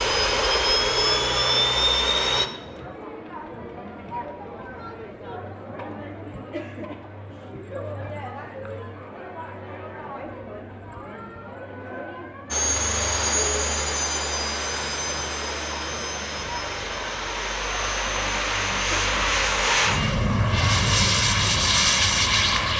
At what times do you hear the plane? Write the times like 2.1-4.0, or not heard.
0.0-2.5, 12.5-22.7.